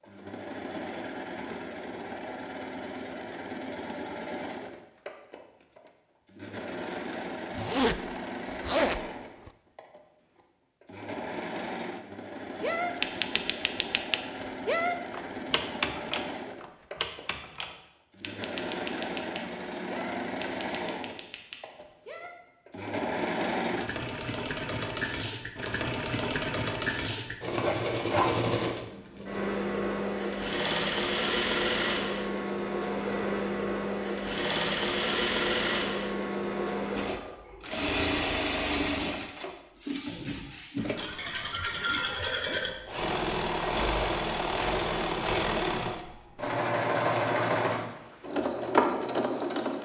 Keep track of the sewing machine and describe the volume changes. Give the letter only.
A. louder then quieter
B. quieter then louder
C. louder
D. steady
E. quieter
C.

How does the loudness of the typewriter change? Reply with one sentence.
The loudness of the typewriter goes down.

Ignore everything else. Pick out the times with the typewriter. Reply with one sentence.
You can hear the typewriter from 12.6 to 22.4 s.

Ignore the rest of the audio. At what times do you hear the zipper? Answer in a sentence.
You can hear the zipper from 7.5 to 9.5 s and from 41.0 to 42.9 s.